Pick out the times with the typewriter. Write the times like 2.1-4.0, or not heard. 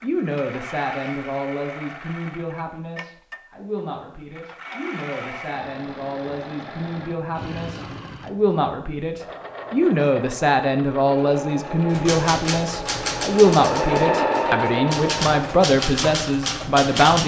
11.8-17.2.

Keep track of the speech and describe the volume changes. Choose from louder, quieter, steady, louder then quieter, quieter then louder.
louder.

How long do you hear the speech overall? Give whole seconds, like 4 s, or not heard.
17 s.